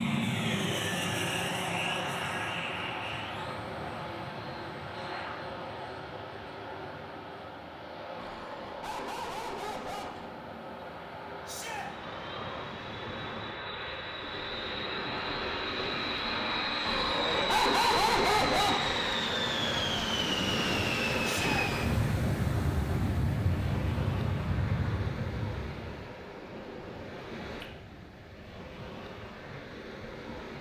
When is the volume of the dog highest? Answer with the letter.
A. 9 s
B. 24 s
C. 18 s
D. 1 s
C.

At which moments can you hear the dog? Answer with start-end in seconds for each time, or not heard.
8.2-10.3, 16.8-19.1.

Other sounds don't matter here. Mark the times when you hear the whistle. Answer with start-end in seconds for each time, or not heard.
not heard.